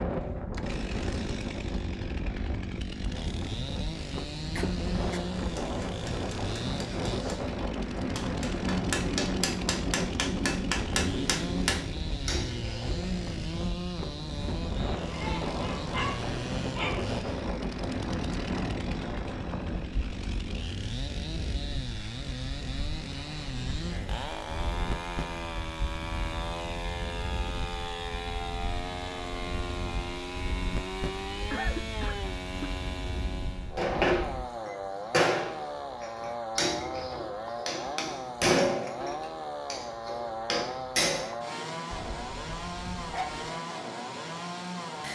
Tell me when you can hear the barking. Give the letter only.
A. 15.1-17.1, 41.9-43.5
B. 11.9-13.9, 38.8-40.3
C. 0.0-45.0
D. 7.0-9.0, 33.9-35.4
A.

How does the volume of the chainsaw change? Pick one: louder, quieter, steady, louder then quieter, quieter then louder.
steady.